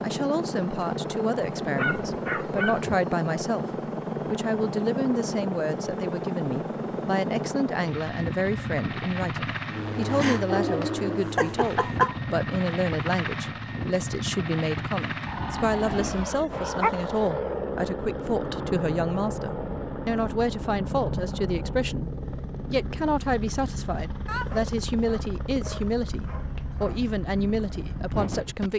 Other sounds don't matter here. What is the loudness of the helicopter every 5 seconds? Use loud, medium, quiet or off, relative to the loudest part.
loud, loud, loud, loud, loud, medium.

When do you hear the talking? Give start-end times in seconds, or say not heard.
0.0-3.6, 4.2-28.7.